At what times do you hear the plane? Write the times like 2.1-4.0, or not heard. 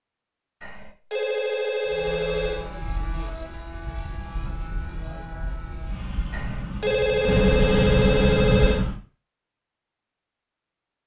1.9-8.9.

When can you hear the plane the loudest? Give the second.
8 s.